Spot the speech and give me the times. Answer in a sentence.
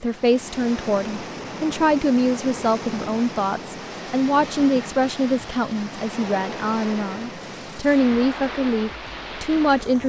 The speech can be heard from 0.0 to 10.0 s.